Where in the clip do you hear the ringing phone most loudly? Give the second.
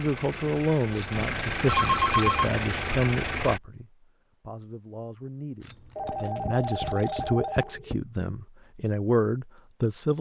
2 s.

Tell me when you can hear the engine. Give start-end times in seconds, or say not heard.
0.0-3.6.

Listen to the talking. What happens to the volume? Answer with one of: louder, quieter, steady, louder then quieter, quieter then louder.
quieter then louder.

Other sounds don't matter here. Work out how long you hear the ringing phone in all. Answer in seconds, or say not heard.
3 s.